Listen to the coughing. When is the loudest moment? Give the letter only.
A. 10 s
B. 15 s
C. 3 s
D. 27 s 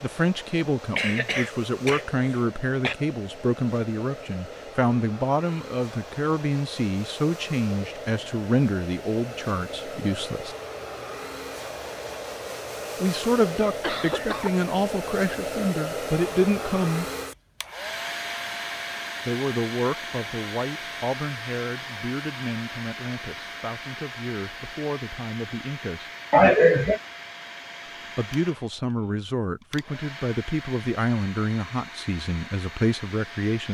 D.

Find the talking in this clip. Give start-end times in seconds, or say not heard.
0.0-10.6, 13.0-17.1, 19.2-26.1, 28.1-33.6.